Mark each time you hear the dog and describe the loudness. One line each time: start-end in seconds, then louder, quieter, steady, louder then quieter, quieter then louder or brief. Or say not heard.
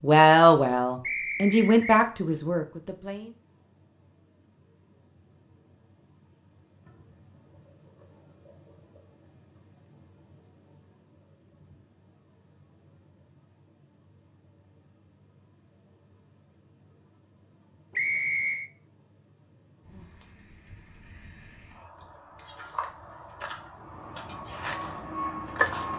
not heard.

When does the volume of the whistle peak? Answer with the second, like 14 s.
18 s.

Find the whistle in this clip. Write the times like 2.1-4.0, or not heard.
1.0-2.0, 17.9-18.7.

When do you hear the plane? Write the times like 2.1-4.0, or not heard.
23.8-25.9.